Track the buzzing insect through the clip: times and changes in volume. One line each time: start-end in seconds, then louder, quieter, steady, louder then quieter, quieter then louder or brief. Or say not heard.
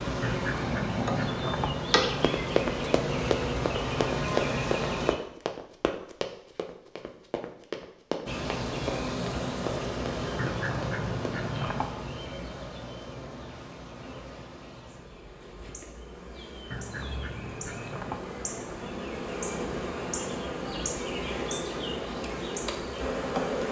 0.0-5.2 steady
8.2-23.6 quieter then louder.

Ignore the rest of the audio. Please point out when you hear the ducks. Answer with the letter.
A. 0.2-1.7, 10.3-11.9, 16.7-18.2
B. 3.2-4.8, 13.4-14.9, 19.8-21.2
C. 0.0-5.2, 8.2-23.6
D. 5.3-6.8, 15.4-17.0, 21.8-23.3
A.